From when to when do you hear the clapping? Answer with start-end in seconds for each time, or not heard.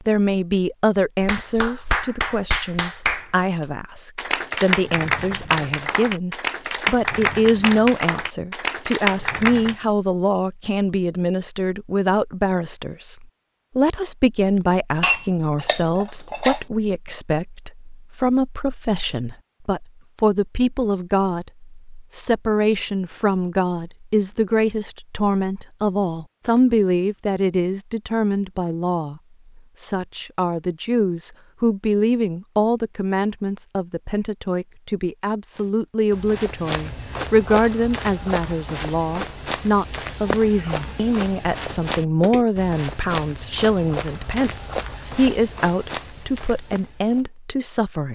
1.2-9.8.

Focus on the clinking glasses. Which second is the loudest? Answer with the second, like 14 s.
15 s.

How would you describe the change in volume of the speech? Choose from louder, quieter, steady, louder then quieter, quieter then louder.
steady.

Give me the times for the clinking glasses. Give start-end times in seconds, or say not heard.
15.0-16.6.